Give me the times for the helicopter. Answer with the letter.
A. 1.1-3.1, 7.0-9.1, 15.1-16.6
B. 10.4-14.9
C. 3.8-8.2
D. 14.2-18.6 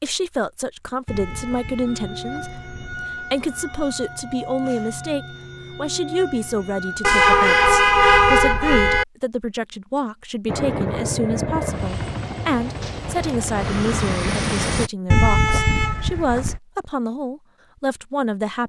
B.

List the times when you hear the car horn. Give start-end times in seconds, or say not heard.
1.1-3.1, 7.0-9.1, 15.1-16.6.